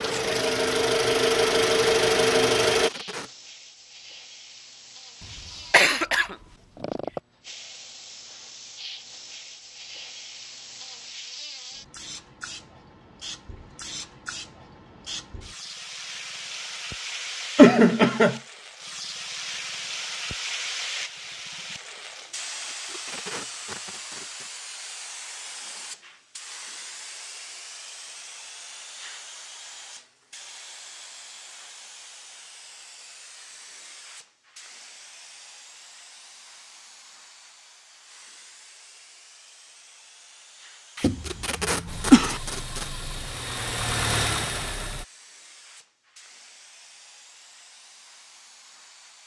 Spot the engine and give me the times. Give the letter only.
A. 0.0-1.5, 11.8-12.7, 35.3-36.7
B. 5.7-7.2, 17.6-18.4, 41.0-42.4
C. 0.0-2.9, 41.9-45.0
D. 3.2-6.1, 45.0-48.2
C.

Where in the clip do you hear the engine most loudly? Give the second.
2 s.